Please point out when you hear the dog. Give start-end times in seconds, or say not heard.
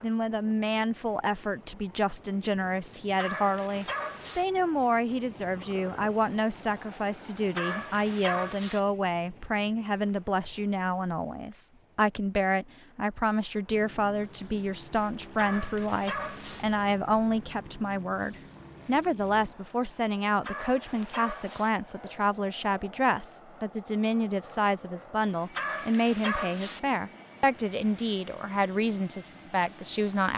3.1-4.5, 7.5-8.8, 15.3-16.6, 20.4-21.7, 25.6-26.8.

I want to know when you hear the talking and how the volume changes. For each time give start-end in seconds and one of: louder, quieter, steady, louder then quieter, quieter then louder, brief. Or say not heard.
0.0-30.3 steady.